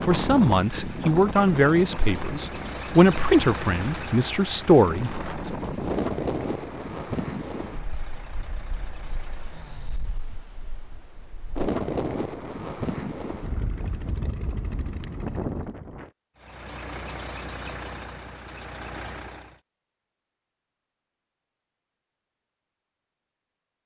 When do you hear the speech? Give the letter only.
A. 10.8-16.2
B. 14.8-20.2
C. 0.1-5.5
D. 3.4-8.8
C.